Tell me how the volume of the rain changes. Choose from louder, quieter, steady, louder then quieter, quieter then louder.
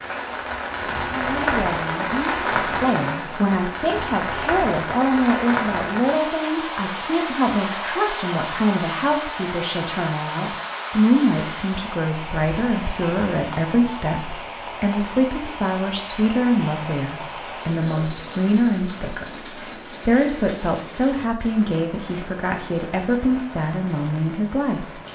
quieter.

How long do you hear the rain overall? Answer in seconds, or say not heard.
25 s.